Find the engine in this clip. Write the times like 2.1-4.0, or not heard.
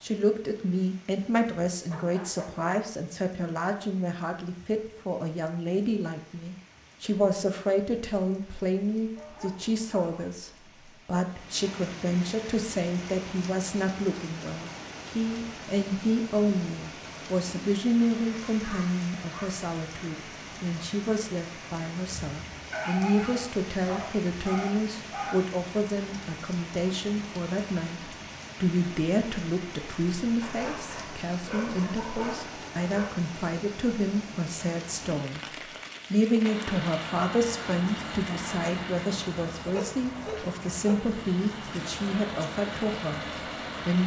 36.4-44.0.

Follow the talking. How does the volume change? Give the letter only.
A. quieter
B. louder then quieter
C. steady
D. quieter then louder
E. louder
C.